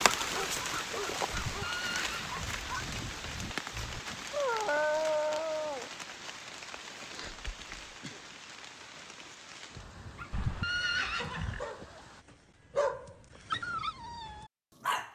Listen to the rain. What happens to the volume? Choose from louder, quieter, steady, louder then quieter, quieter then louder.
quieter.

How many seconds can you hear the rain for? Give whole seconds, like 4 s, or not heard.
12 s.